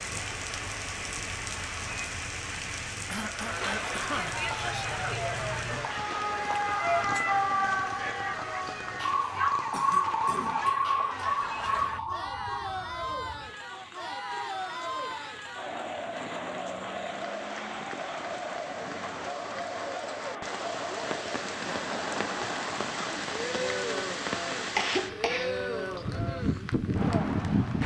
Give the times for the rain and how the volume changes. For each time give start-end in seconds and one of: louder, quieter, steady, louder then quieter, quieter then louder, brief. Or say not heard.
0.0-27.8 quieter then louder.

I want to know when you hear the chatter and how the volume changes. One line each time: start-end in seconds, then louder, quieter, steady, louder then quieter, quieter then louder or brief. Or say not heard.
0.0-27.8 steady.